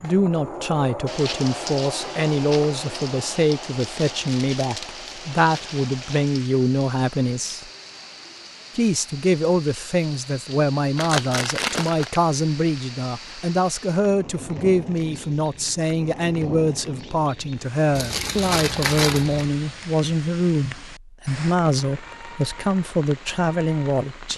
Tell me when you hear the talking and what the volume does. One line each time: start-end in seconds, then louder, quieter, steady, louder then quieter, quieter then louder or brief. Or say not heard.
0.0-7.7 steady
8.8-24.3 steady.